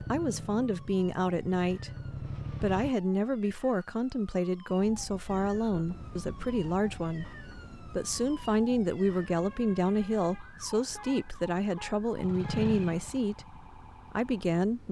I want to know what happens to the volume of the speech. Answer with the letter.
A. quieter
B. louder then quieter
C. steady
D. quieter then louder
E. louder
C.